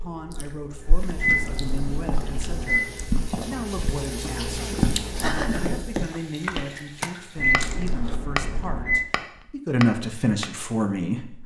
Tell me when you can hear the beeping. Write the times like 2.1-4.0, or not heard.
1.1-2.8, 7.3-9.0.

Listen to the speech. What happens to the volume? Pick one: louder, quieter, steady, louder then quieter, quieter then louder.
louder.